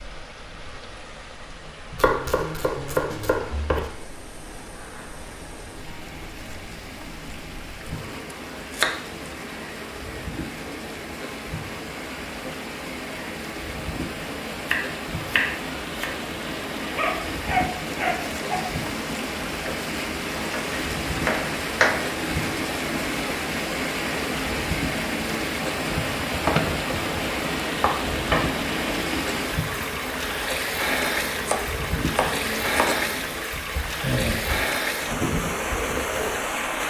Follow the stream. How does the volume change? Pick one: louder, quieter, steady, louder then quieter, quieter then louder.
louder.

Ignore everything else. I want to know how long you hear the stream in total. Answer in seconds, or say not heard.
37 s.